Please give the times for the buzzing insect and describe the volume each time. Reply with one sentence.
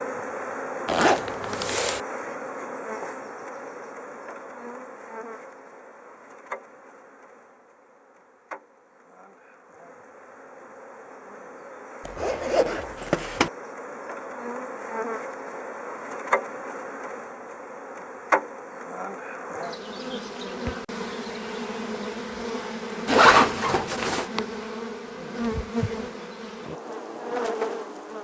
You can hear the buzzing insect from 0.0 to 28.2 s, getting quieter then louder.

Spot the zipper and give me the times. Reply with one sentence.
You can hear the zipper from 0.8 to 2.0 s, from 12.1 to 13.5 s and from 23.1 to 24.2 s.